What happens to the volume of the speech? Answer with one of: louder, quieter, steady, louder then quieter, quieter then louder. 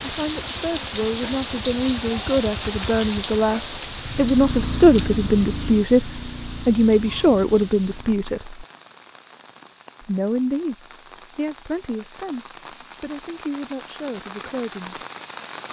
louder then quieter.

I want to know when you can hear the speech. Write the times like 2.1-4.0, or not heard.
0.0-8.7, 10.0-15.0.